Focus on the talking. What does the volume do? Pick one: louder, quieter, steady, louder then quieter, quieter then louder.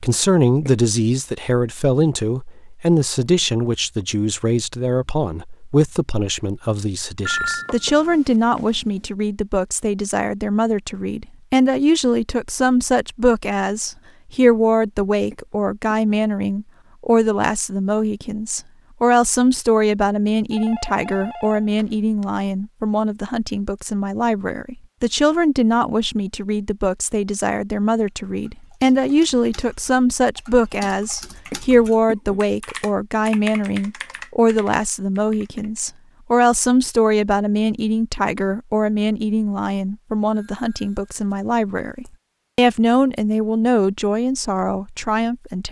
steady.